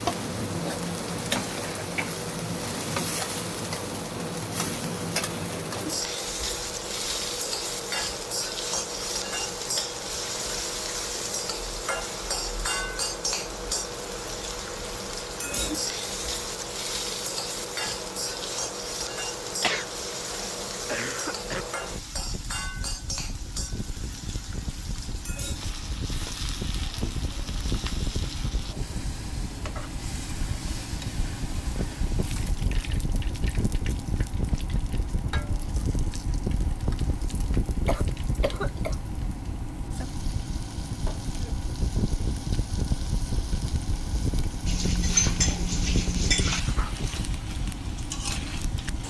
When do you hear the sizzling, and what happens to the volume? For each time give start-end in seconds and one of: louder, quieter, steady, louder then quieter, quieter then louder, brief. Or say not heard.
0.0-49.0 quieter.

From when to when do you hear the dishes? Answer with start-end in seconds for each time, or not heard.
44.6-46.6.